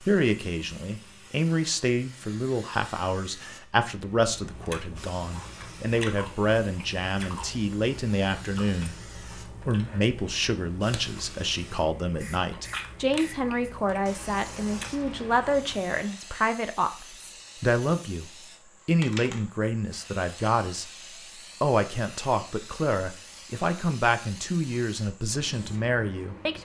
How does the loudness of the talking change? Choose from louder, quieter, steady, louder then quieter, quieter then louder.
steady.